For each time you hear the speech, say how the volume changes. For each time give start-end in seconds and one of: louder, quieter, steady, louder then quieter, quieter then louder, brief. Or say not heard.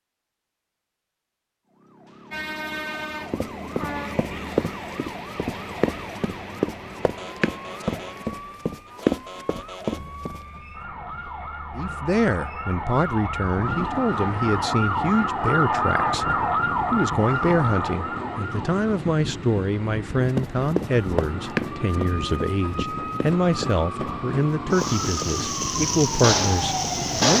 11.8-27.3 steady.